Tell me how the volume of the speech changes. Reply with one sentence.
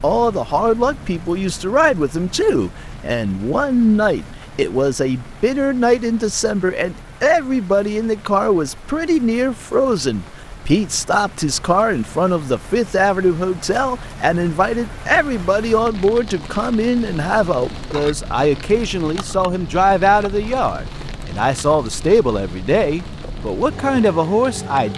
The volume of the speech stays about the same.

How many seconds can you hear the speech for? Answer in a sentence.
You can hear the speech for 25 seconds altogether.